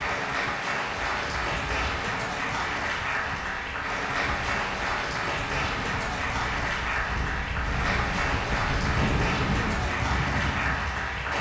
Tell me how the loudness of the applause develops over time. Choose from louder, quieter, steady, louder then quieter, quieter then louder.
steady.